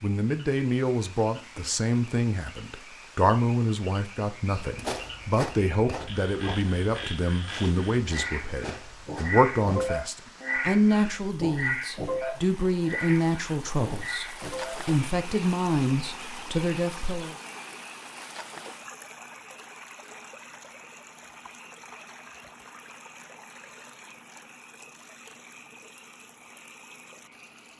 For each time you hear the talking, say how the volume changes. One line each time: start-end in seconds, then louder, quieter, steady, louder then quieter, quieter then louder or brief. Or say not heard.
0.0-17.4 steady.